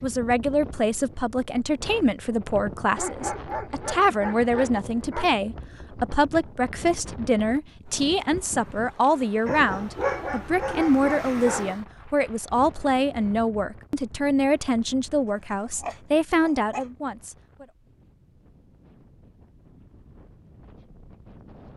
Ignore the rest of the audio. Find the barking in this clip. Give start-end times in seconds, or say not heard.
3.0-5.3, 9.4-11.8, 15.2-16.9.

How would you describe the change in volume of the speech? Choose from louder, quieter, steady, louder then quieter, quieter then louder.
steady.